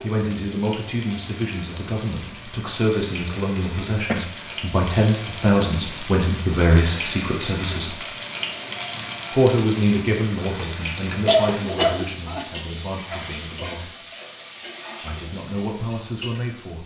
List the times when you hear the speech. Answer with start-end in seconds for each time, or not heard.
0.0-8.0, 9.3-13.9, 15.0-16.8.